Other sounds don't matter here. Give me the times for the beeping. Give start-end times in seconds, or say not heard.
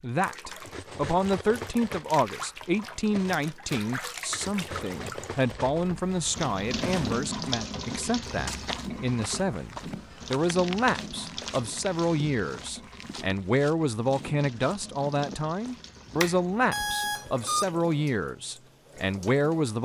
16.1-17.6.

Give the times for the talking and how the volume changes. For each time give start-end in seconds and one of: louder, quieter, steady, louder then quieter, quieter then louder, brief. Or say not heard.
0.0-19.8 steady.